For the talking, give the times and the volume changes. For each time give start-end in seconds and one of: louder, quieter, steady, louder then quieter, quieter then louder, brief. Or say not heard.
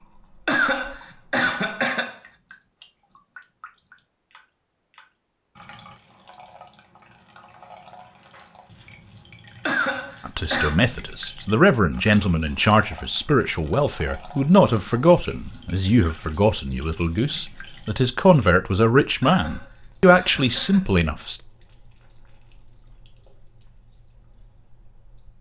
10.2-21.4 steady.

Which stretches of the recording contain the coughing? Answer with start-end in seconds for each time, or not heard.
0.5-2.1, 9.7-10.8, 19.2-20.9.